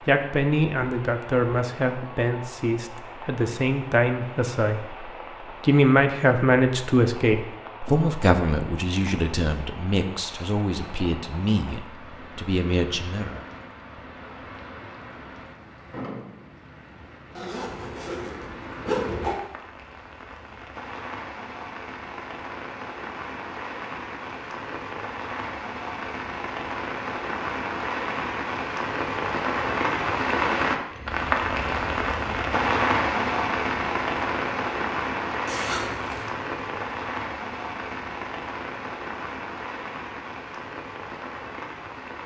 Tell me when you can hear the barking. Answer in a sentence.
The barking can't be heard in this clip.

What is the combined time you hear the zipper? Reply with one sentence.
You can hear the zipper for 3 seconds altogether.